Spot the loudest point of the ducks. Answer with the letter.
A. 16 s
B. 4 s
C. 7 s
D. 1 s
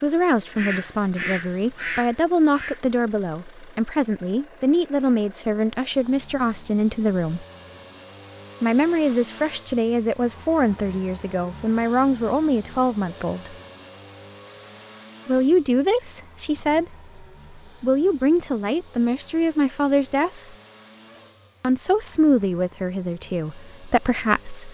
D.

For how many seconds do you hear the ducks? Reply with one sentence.
You can hear the ducks for 2 seconds altogether.